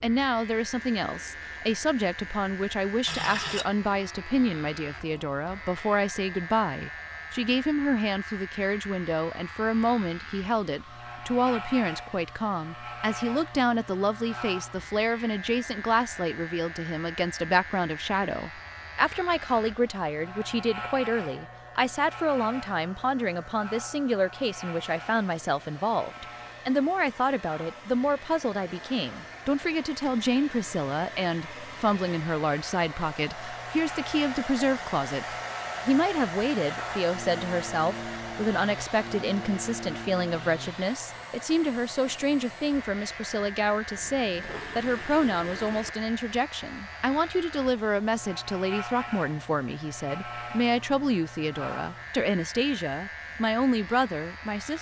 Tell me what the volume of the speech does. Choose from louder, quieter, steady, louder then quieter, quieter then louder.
steady.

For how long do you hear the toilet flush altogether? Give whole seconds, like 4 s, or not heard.
3 s.